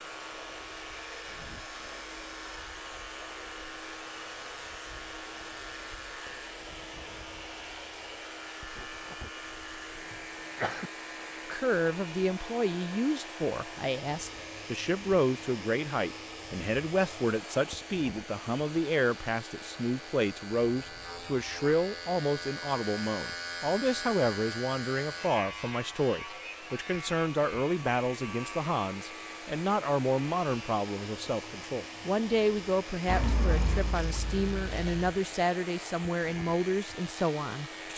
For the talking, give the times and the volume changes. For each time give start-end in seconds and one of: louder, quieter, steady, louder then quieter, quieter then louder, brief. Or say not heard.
11.5-37.9 steady.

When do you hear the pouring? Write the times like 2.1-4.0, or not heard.
33.0-35.0.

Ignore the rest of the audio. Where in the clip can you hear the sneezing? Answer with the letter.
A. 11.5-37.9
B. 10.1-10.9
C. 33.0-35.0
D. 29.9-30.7
B.